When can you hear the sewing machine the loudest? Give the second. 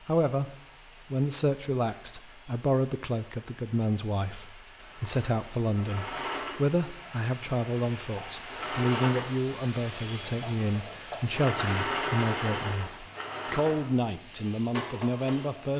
12 s.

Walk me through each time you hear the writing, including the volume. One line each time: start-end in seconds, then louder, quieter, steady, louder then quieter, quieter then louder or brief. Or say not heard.
not heard.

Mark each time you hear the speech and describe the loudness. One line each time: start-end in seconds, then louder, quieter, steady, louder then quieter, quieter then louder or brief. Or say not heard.
0.1-15.7 steady.